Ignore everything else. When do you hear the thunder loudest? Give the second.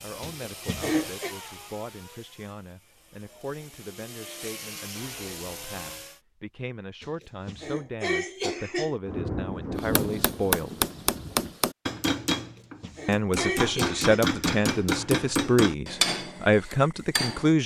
10 s.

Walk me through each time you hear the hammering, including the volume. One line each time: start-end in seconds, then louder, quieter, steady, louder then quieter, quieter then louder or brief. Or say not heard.
9.8-17.5 steady.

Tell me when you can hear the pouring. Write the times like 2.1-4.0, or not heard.
not heard.